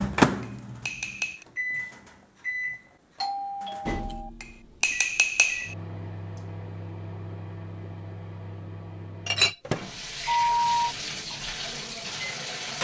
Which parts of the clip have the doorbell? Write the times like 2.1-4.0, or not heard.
3.2-4.3, 10.2-10.9.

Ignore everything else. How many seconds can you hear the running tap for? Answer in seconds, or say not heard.
3 s.